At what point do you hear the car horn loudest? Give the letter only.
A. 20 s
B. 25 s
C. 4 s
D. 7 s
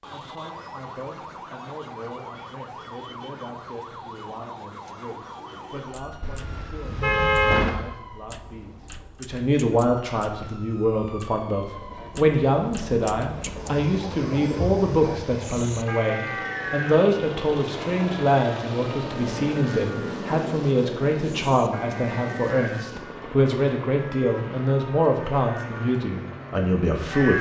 D.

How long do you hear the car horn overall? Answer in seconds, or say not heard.
2 s.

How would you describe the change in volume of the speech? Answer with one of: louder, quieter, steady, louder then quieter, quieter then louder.
louder.